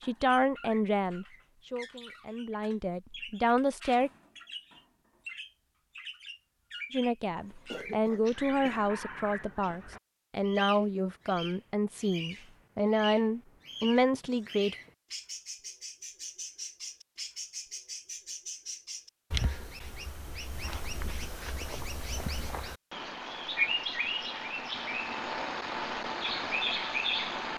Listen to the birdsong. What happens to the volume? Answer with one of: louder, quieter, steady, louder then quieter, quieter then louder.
louder.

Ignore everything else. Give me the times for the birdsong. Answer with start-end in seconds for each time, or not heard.
0.0-27.5.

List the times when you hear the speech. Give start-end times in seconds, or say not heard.
0.0-4.1, 6.9-14.8.